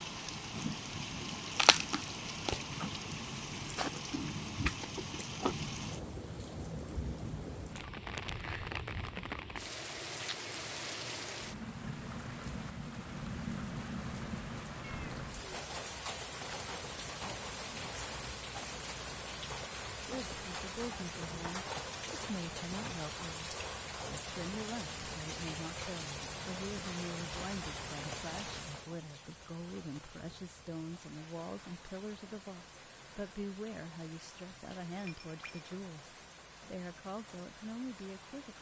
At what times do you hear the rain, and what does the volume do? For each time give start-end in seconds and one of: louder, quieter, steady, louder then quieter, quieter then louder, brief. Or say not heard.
0.0-38.5 quieter.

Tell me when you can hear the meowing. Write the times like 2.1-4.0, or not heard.
14.8-15.6.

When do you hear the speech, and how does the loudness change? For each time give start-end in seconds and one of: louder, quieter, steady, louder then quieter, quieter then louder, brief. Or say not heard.
20.1-38.5 steady.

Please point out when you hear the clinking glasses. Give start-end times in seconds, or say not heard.
35.0-35.7.